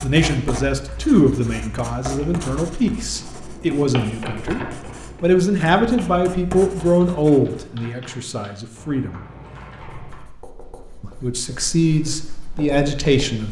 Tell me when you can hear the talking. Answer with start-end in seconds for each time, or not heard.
0.0-4.6, 5.2-9.2, 11.0-13.4.